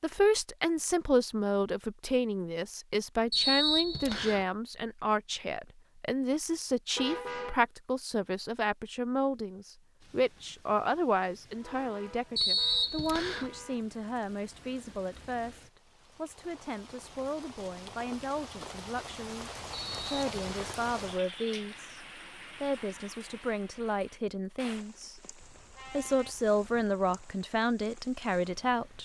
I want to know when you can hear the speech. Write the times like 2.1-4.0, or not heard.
0.0-25.2, 25.9-28.9.